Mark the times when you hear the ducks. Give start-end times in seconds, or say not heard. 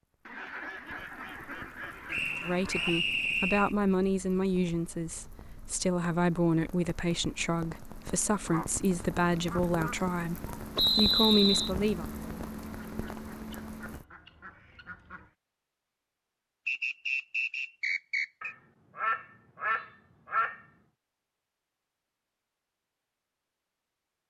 0.2-3.0, 8.4-9.9, 12.8-15.3, 18.4-20.6.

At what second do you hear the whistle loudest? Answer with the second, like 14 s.
11 s.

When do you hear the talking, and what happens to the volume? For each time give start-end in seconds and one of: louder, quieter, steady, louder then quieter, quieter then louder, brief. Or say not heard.
2.4-12.1 steady.